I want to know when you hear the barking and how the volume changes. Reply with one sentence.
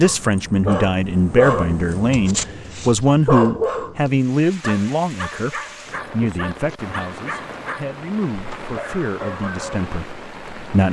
The barking can be heard from 0.0 to 9.9 s, getting quieter.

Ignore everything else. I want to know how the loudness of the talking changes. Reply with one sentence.
The loudness of the talking goes down.